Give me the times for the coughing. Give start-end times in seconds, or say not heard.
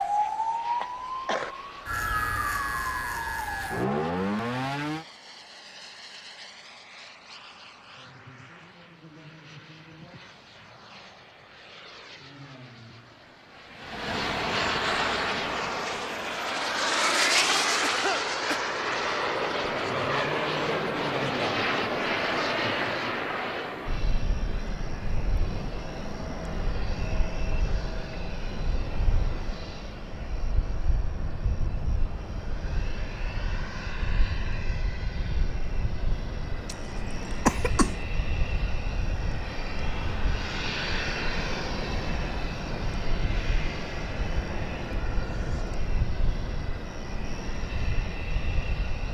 0.8-1.6, 17.3-18.6, 36.6-38.0.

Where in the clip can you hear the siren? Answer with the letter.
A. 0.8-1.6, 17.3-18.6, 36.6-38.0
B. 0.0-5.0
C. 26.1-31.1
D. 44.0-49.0
B.